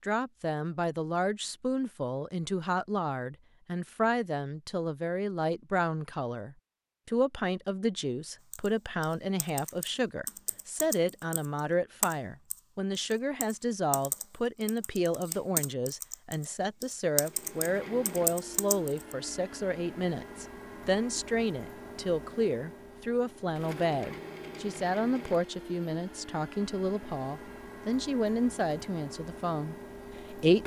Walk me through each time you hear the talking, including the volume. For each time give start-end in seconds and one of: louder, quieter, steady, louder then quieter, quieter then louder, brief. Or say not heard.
0.0-30.6 steady.